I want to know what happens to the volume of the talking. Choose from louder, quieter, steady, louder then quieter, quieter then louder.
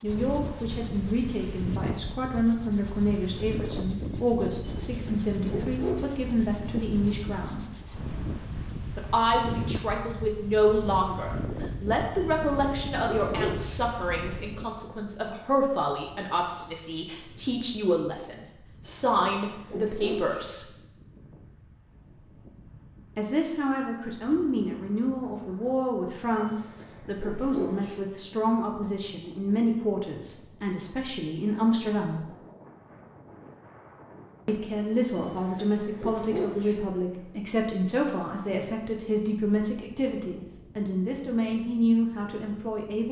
steady.